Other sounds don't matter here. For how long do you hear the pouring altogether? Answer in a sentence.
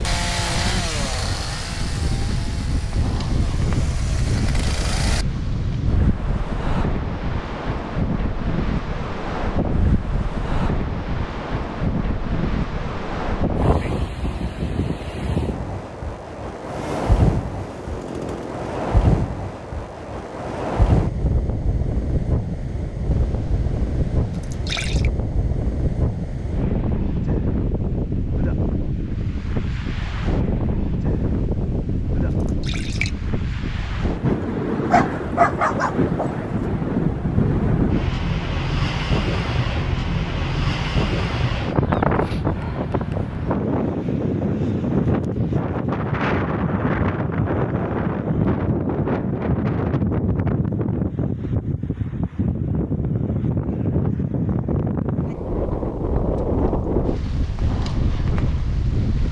The pouring can be heard for 4 seconds in total.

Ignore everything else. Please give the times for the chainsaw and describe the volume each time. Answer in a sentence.
You can hear the chainsaw from 0.0 to 5.4 s, getting quieter then louder; and briefly from 16.6 to 18.7 s.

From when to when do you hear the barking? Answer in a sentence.
You can hear the barking from 34.9 to 36.5 s.